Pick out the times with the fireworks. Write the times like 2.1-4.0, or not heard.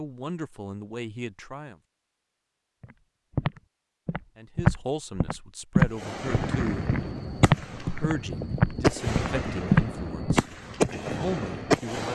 5.8-12.0.